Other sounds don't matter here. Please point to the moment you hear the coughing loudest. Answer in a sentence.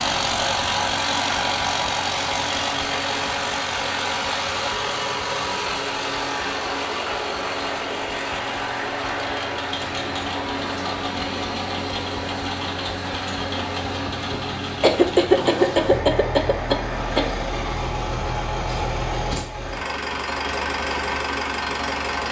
The loudest moment of the coughing is at 15 seconds.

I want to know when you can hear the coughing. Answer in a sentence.
You can hear the coughing from 14.8 to 17.2 s.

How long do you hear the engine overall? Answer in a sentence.
The engine can be heard for 22 seconds in total.